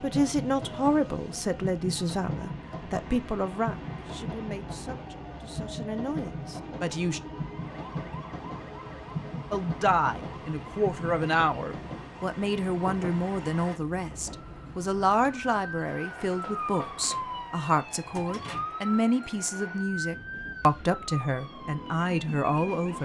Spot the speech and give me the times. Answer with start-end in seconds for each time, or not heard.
0.0-7.2, 9.5-22.9.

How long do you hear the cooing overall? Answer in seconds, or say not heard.
not heard.